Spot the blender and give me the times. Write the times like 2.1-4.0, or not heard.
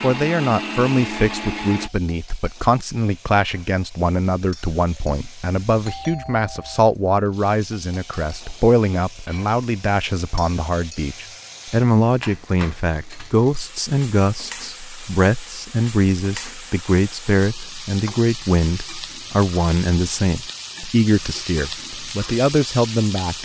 0.0-1.9.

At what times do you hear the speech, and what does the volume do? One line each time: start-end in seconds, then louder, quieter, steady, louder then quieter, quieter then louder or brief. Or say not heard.
0.0-23.3 steady.